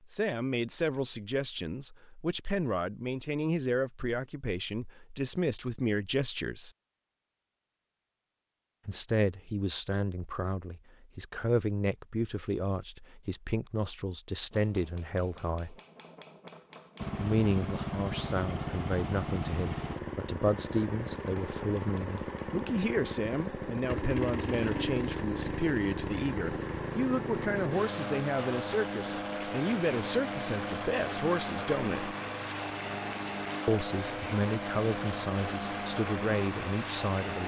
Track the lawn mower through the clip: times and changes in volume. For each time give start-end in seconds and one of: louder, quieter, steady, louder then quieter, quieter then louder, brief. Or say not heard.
17.0-37.4 steady.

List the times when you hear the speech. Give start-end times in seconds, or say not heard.
0.1-6.7, 8.8-15.8, 17.2-32.1, 33.6-37.4.